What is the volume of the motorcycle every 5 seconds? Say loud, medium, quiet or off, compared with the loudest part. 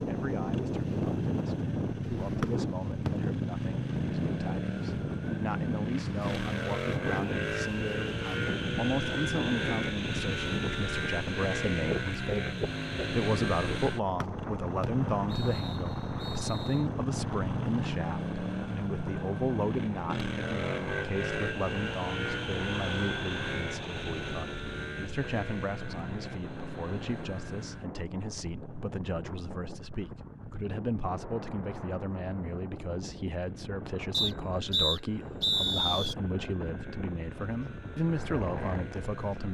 loud, loud, loud, loud, loud, medium, quiet, quiet.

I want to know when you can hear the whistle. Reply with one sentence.
The whistle can be heard from 2.4 to 3.1 s, from 14.2 to 16.8 s and from 34.1 to 36.1 s.